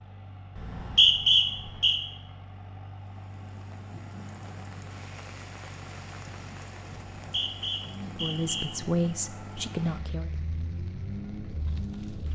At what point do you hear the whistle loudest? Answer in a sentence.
The loudest moment of the whistle is at 1 second.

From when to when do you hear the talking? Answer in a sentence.
The talking can be heard from 8.1 to 10.3 s.